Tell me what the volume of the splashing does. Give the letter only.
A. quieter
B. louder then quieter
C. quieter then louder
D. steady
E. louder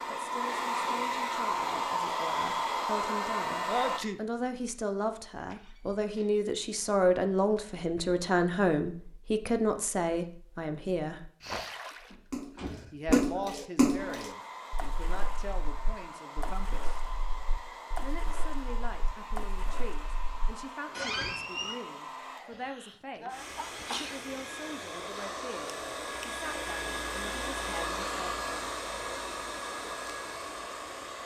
A.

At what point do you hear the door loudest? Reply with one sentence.
The volume of the door peaks at 21 seconds.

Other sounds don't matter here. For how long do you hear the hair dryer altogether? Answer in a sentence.
The hair dryer can be heard for 21 seconds in total.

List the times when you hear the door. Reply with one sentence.
The door can be heard from 5.3 to 6.4 s, from 12.1 to 13.0 s and from 20.9 to 21.8 s.